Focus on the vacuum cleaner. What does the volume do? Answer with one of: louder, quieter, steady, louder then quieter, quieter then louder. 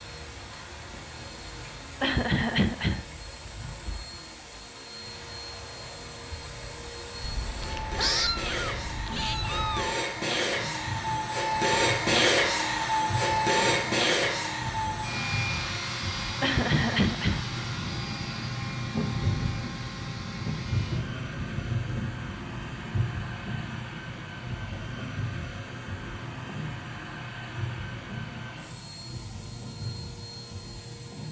louder then quieter.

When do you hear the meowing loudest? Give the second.
8 s.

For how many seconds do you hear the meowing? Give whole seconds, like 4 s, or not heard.
3 s.